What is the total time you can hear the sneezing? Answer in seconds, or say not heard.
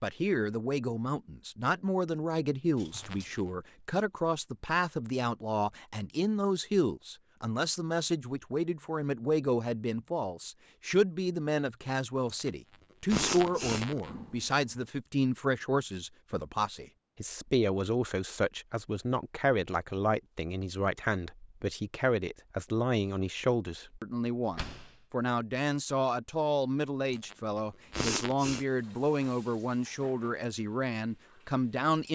4 s.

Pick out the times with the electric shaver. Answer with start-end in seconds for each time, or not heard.
not heard.